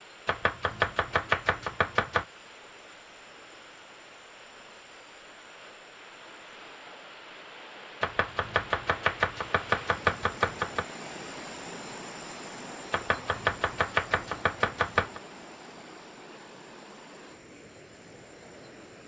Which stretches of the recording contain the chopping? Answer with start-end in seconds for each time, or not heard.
0.2-2.2, 8.0-10.8, 12.9-15.2.